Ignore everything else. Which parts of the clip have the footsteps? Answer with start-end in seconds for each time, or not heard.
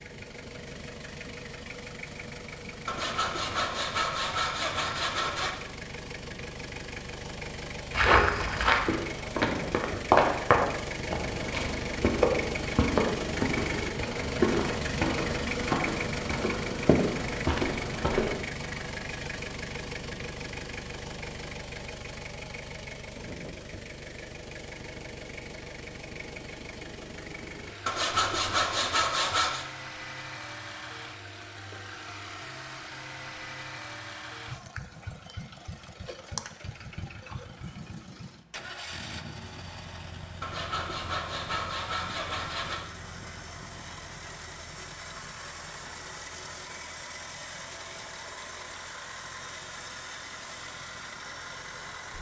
7.9-18.4.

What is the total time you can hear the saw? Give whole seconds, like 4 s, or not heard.
7 s.